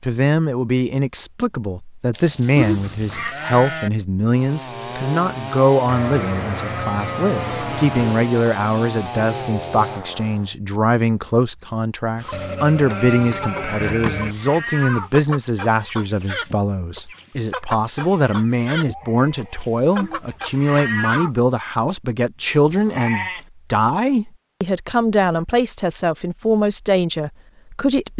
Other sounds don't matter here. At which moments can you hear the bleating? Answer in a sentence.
The bleating can be heard from 2.1 to 3.9 s, from 5.8 to 8.2 s, from 12.3 to 14.3 s, from 18.8 to 20.4 s and from 22.7 to 23.4 s.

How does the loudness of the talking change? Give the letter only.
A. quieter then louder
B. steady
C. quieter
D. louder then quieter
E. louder
B.